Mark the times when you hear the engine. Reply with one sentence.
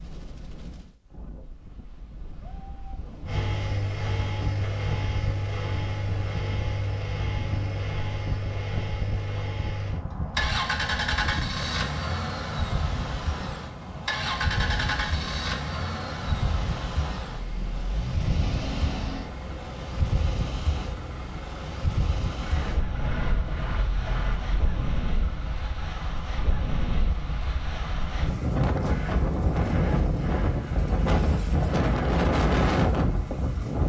You can hear the engine from 3.2 to 33.8 s.